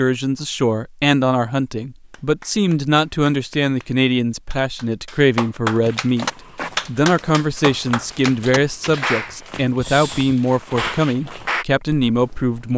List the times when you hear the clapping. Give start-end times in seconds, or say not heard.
2.1-11.7.